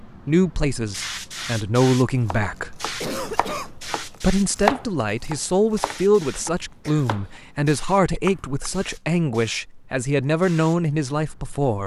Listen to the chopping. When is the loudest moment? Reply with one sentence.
The volume of the chopping peaks at 5 seconds.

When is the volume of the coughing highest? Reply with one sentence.
The volume of the coughing peaks at 3 seconds.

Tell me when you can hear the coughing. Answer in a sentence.
You can hear the coughing from 3.0 to 3.8 s and from 6.3 to 7.1 s.